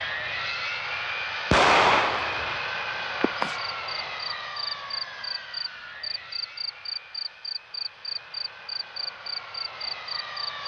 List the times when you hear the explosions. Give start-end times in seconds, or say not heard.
1.5-2.6.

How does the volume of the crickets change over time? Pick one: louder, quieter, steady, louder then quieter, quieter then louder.
steady.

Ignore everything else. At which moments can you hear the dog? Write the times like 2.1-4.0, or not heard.
not heard.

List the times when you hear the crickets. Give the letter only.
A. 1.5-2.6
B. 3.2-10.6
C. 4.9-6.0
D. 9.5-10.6
B.